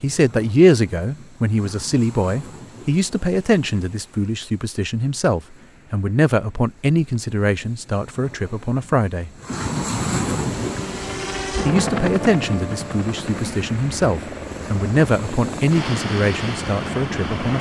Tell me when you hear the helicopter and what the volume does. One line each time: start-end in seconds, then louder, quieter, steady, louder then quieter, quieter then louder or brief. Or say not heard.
10.5-17.3 quieter.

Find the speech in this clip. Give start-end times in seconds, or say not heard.
0.0-9.3, 11.7-17.5.